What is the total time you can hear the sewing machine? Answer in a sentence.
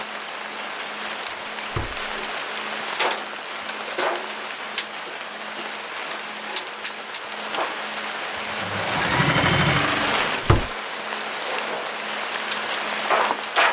You can hear the sewing machine for 2 seconds altogether.